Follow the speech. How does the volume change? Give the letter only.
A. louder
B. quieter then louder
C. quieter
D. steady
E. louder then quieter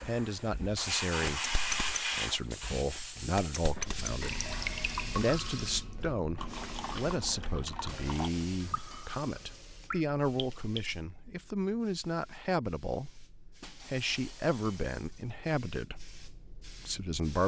D.